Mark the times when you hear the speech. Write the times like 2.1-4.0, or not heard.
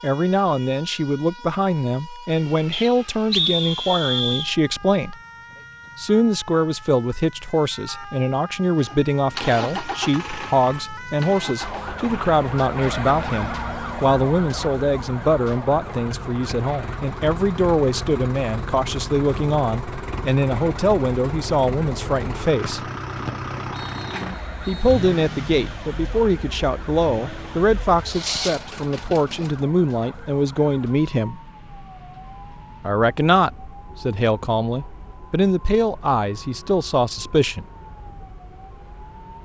0.0-5.2, 6.0-22.9, 24.6-31.4, 32.8-37.6.